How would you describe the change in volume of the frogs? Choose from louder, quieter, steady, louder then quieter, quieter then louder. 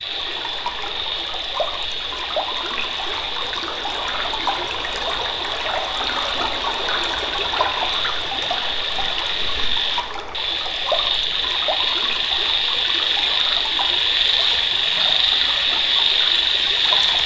louder.